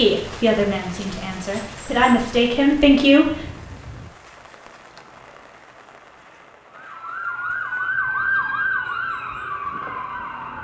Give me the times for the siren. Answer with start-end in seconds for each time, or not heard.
6.7-10.5.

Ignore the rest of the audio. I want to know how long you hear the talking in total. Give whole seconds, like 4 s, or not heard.
3 s.